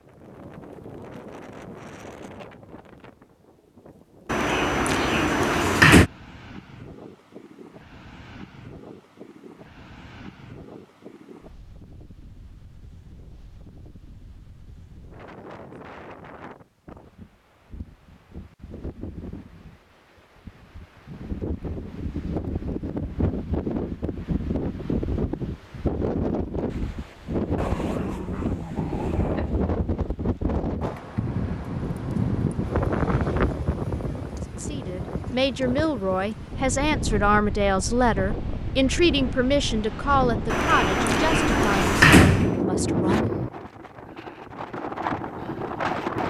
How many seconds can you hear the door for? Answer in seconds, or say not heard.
4 s.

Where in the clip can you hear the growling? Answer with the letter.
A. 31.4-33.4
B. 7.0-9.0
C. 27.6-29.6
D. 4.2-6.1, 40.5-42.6
C.